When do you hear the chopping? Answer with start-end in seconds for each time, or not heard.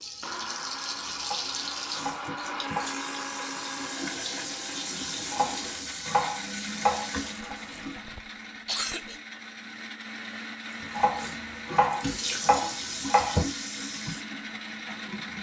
1.2-3.0, 5.3-7.5, 10.8-13.4.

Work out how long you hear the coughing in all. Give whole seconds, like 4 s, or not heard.
2 s.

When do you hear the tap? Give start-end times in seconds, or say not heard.
0.0-8.0, 10.7-15.3.